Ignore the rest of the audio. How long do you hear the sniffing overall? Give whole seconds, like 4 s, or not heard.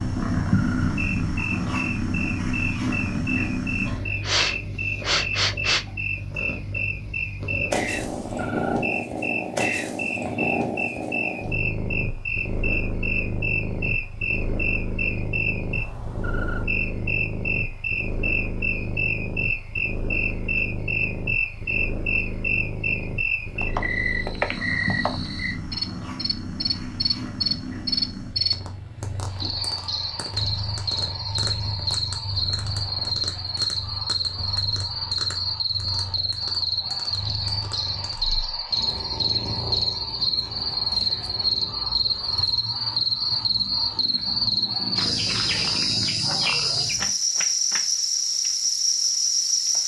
2 s.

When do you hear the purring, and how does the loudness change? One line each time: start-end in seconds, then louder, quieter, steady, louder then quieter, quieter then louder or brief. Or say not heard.
0.0-47.1 quieter.